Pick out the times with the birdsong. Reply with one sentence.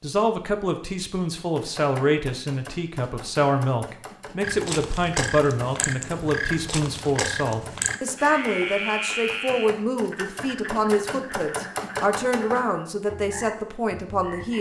You can't hear the birdsong here.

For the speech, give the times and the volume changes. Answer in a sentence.
The speech can be heard from 0.0 to 14.5 s, at a steady volume.